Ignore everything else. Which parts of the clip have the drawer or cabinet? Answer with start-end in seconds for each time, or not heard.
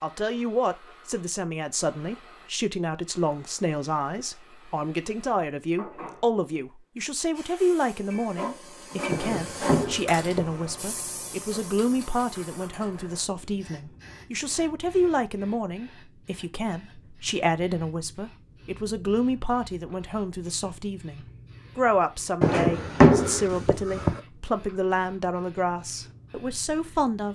9.1-10.6, 22.4-24.2.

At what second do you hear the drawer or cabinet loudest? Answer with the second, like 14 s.
23 s.